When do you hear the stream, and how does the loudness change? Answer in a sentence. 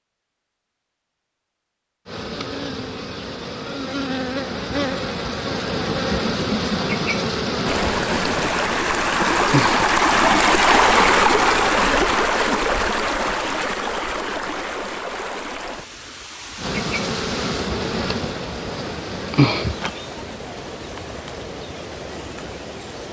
The stream can be heard from 7.7 to 23.0 s, getting quieter.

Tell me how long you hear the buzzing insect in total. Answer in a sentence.
The buzzing insect can be heard for 14 seconds in total.